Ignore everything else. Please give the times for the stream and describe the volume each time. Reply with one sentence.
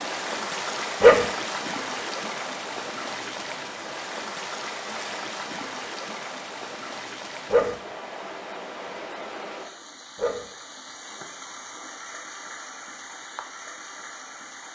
You can hear the stream from 0.0 to 14.7 s, getting quieter.